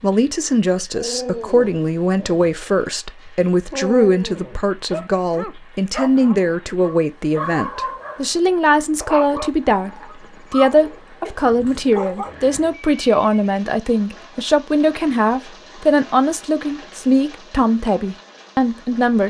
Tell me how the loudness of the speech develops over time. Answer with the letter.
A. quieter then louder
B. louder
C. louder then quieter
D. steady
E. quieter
D.